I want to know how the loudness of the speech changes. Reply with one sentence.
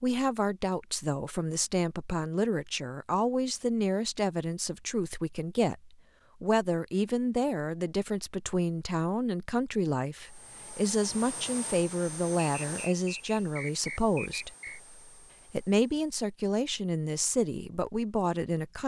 The loudness of the speech stays about the same.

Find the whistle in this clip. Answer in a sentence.
You can hear the whistle from 12.4 to 14.8 s.